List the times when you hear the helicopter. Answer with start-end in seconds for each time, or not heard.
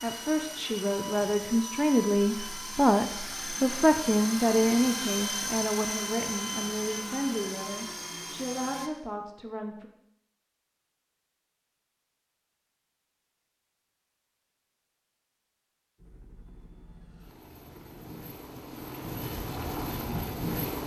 0.0-8.9, 15.9-20.8.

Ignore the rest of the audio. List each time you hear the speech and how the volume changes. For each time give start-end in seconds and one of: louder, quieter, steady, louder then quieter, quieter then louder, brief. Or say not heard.
0.0-9.8 quieter.